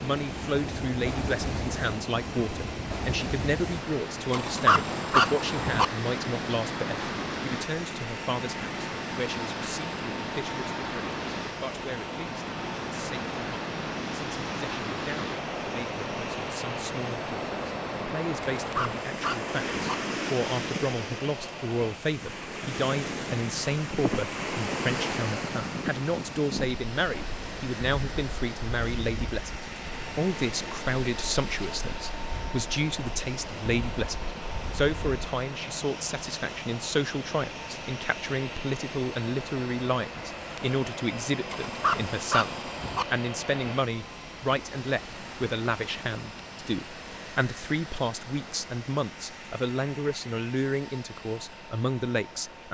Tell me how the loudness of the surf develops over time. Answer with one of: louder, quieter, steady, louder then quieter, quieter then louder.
quieter.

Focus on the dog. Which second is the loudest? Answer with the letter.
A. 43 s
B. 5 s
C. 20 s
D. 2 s
B.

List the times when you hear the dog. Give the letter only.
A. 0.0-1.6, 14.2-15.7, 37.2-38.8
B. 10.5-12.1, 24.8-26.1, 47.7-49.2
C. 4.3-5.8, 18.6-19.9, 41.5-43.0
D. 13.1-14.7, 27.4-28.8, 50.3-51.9
C.